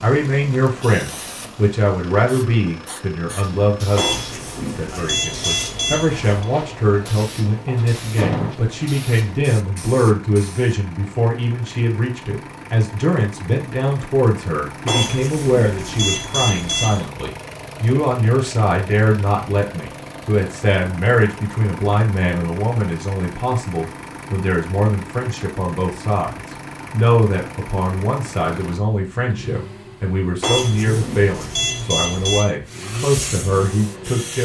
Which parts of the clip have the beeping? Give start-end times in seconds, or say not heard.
4.0-6.5, 14.8-17.1, 30.4-32.5.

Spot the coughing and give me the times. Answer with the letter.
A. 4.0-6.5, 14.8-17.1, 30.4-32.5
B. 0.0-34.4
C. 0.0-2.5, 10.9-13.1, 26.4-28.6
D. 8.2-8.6
D.